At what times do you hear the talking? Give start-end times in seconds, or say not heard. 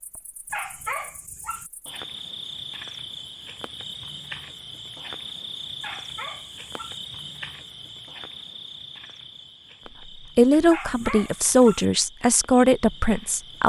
10.3-13.6.